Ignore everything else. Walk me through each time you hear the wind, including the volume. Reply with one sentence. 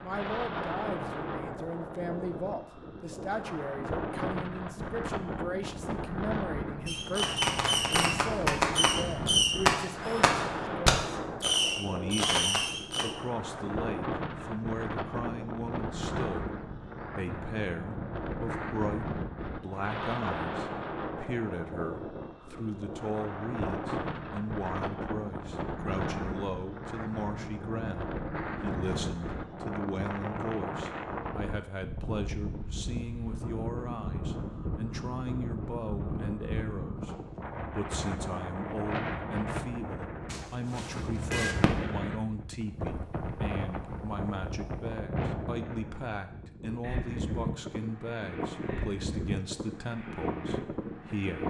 The wind can be heard from 0.0 to 51.4 s, at a steady volume.